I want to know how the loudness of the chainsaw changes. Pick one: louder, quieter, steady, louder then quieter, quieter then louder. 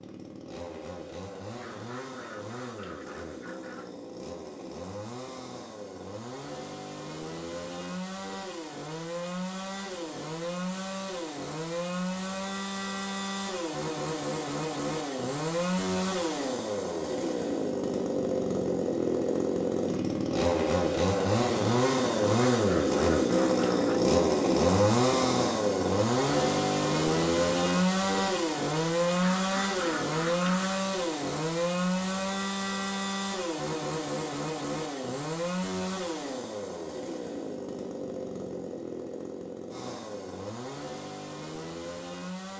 louder then quieter.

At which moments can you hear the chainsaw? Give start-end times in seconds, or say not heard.
0.0-42.5.